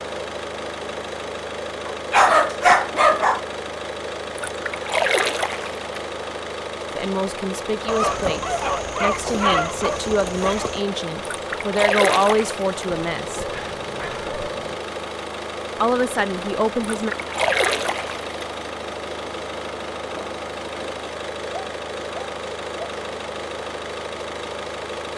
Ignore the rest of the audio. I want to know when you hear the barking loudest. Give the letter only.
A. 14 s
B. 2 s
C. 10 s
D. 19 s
B.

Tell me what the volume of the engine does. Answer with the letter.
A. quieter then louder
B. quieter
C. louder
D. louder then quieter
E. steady
E.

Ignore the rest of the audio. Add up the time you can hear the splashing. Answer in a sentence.
The splashing can be heard for 5 seconds in total.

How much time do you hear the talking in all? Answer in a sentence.
The talking can be heard for 8 seconds in total.